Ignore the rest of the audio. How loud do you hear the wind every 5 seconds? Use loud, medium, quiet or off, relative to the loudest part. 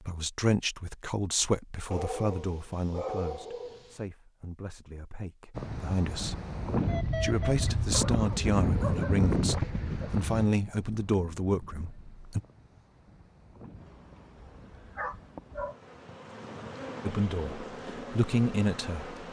off, loud, quiet, quiet.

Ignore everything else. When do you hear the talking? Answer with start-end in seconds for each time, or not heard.
0.1-6.4, 7.1-12.4, 17.1-19.1.